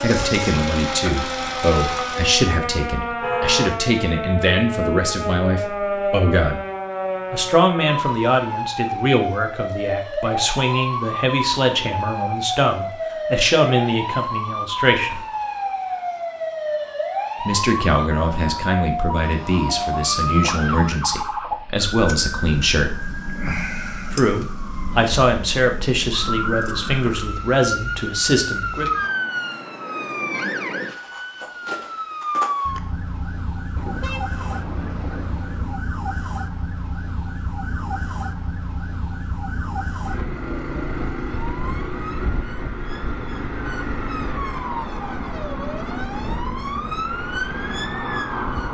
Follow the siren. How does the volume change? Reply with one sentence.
The volume of the siren stays about the same.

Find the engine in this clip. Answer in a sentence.
You can hear the engine from 0.0 to 2.5 s.